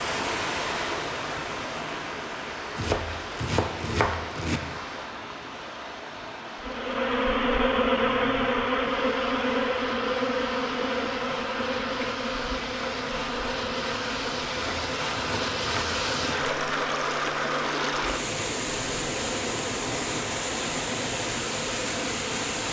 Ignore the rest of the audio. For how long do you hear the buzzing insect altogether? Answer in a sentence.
The buzzing insect can be heard for 16 seconds in total.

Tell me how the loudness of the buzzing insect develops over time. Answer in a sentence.
The loudness of the buzzing insect goes down.